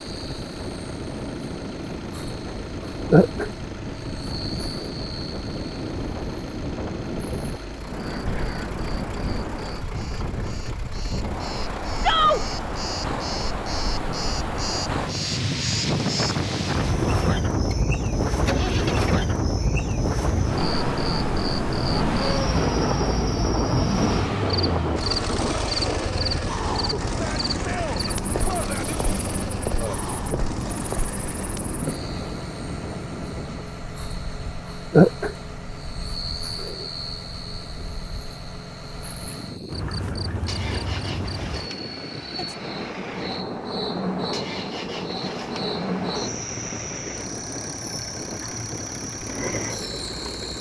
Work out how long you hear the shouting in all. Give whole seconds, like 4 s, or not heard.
2 s.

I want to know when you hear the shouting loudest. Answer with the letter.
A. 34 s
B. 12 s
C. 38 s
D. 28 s
B.